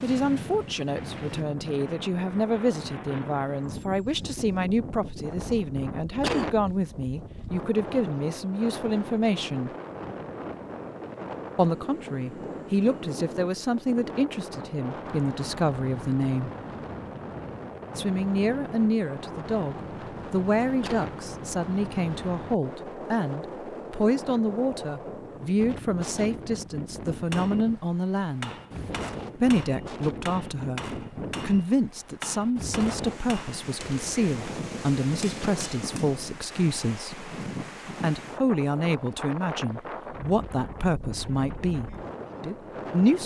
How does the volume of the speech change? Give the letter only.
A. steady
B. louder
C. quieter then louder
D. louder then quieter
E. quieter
A.